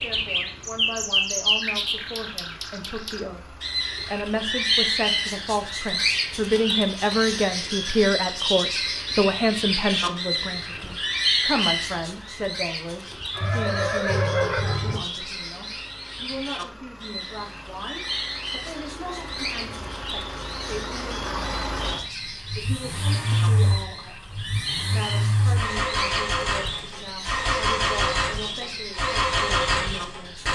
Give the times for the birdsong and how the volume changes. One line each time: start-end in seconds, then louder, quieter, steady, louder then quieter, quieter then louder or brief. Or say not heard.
0.0-30.5 quieter.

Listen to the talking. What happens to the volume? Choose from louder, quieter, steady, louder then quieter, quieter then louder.
louder then quieter.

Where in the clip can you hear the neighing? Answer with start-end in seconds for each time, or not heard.
13.3-14.9.